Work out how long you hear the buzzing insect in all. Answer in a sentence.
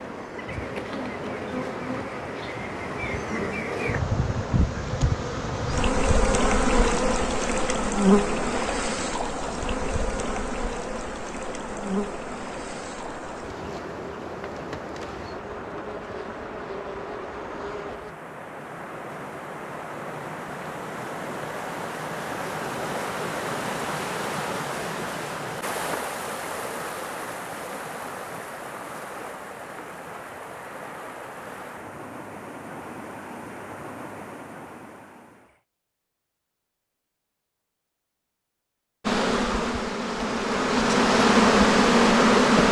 You can hear the buzzing insect for 22 seconds altogether.